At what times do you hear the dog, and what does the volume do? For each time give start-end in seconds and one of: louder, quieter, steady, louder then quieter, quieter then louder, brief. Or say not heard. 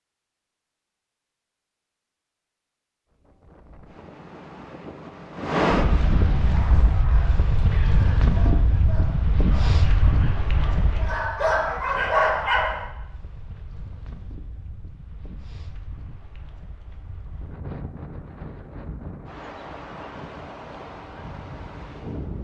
6.5-12.9 louder.